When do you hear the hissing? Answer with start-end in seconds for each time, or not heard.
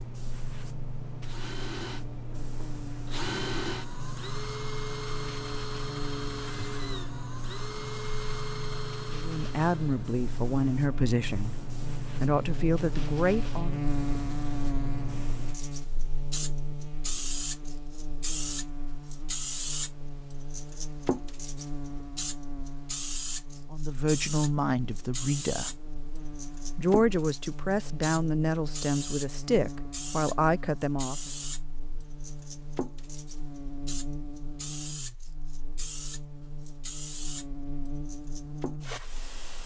0.0-39.6.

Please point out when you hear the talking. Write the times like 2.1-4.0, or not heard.
9.1-13.8, 23.7-25.8, 26.7-31.3.